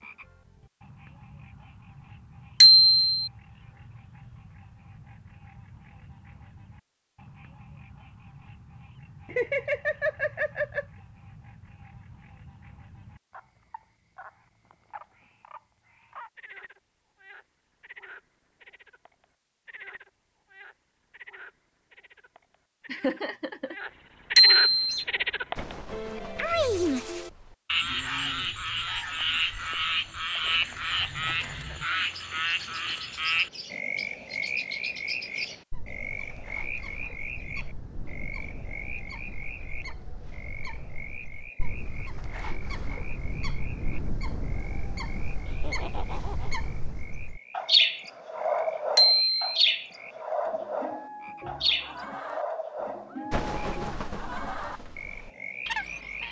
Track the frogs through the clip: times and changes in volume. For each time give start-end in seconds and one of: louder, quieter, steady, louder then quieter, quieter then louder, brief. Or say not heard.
0.0-56.2 louder then quieter.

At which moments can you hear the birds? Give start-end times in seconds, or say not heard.
24.8-56.2.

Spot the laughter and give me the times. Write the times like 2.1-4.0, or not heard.
9.2-10.8, 22.9-23.8, 45.5-46.5.